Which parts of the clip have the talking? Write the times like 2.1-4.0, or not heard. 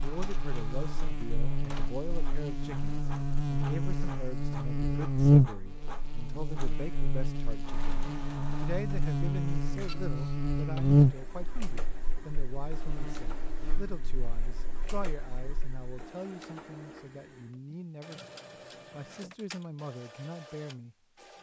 0.0-18.2, 18.9-21.3.